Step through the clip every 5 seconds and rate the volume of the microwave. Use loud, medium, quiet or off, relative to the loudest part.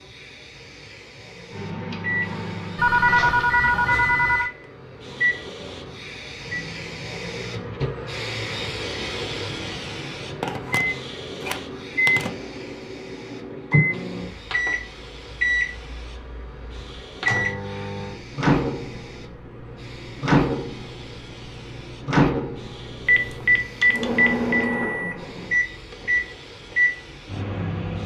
loud, medium, loud, loud, loud, loud.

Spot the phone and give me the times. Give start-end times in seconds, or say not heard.
2.8-4.5, 10.4-12.3, 23.1-24.6.